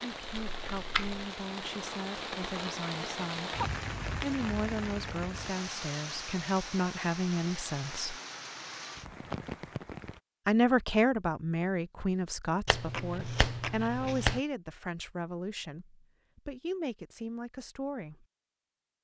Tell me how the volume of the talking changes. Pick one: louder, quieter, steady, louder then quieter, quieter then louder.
louder then quieter.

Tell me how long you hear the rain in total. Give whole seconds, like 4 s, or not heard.
10 s.